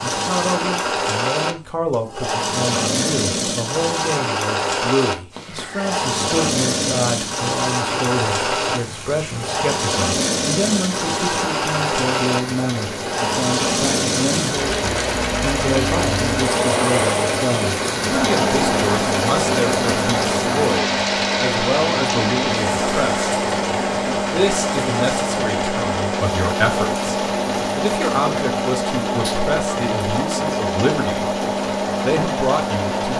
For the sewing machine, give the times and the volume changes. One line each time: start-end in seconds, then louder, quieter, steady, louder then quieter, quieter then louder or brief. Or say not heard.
0.0-33.1 steady.